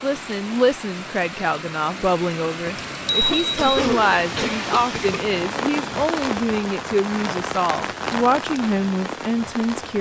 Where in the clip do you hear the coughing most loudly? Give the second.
4 s.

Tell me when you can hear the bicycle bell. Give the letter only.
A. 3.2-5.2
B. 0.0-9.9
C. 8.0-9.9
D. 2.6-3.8
D.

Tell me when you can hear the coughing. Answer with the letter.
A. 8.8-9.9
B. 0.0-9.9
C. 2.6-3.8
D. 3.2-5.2
D.